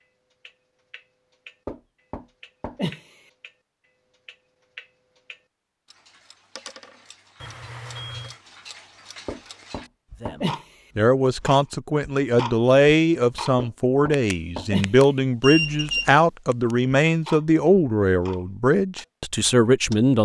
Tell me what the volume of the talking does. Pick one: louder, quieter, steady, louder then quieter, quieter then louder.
steady.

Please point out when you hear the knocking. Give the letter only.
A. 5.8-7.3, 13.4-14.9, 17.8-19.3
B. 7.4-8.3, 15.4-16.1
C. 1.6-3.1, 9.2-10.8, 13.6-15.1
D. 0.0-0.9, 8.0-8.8
C.